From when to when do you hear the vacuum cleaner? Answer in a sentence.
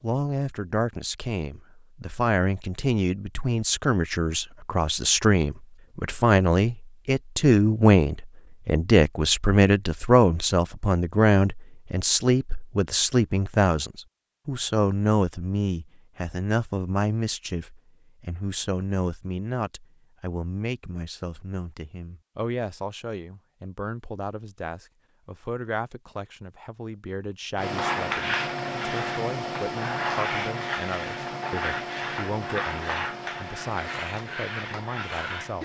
You can hear the vacuum cleaner from 27.6 to 35.6 s.